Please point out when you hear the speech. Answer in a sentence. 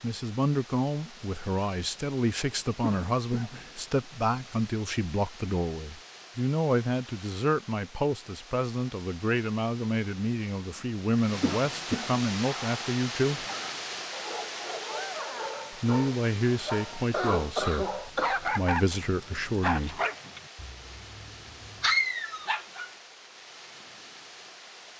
The speech can be heard from 0.0 to 13.4 s and from 15.7 to 20.0 s.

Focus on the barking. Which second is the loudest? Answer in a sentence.
The volume of the barking peaks at 22 seconds.